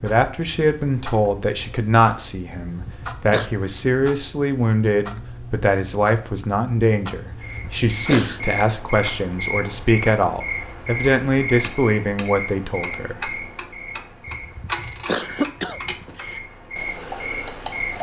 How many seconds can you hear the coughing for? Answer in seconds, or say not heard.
4 s.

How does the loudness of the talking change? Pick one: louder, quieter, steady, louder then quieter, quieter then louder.
steady.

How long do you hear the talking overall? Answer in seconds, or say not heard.
13 s.